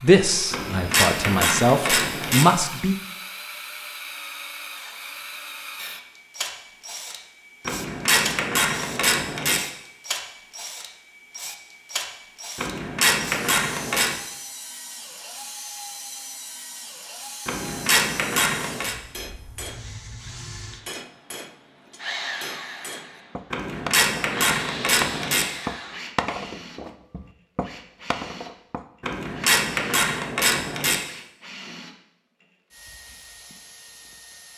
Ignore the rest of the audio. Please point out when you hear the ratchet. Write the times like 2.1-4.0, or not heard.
0.5-2.5, 7.7-9.6, 12.6-14.2, 17.4-18.9, 23.5-25.4, 29.0-31.0.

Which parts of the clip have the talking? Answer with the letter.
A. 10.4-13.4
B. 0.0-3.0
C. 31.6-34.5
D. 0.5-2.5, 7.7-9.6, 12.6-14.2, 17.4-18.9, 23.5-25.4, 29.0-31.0
B.